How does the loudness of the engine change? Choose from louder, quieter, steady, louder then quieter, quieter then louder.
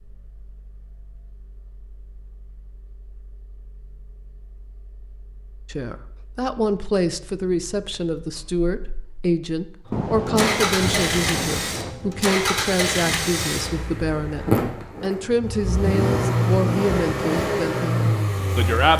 louder.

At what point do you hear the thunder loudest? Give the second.
10 s.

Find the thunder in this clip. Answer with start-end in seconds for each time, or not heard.
9.9-11.9.